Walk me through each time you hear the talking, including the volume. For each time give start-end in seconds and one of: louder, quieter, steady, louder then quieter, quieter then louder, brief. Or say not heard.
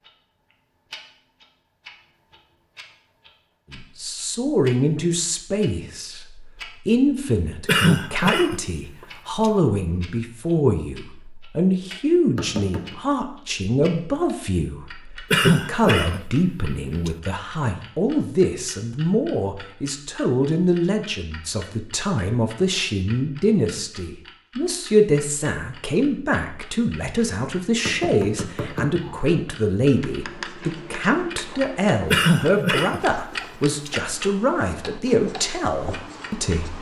3.7-36.7 steady.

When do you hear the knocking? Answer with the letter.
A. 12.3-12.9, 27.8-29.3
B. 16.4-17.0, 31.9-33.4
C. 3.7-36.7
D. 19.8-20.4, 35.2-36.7
A.